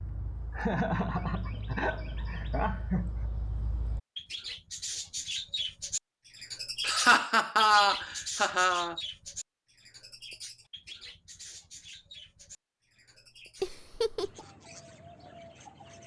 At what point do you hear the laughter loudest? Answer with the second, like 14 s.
8 s.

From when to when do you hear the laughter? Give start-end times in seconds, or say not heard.
0.5-3.2, 6.8-8.9, 13.6-14.4.